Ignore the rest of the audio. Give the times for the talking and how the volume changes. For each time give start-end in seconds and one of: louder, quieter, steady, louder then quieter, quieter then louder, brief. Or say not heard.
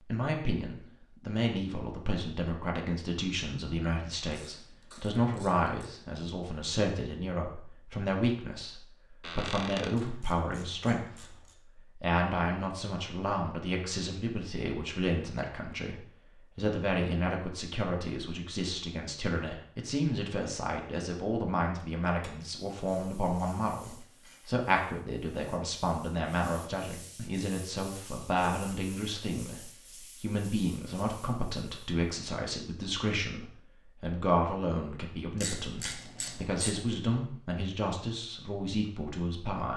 0.1-39.7 steady.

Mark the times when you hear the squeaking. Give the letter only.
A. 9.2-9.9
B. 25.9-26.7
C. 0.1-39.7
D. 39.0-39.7
A.